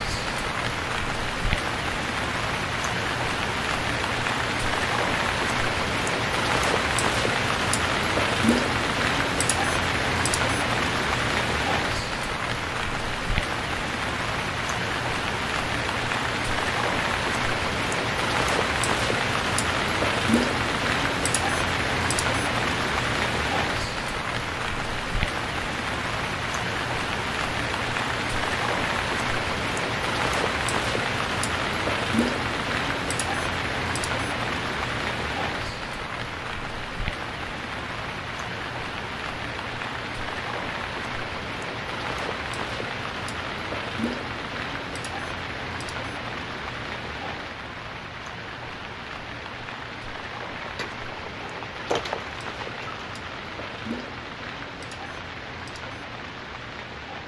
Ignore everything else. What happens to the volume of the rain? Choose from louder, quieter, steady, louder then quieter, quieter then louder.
quieter.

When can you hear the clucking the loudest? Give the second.
52 s.